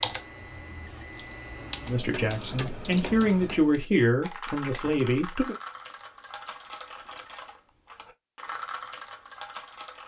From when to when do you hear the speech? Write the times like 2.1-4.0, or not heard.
1.9-5.5.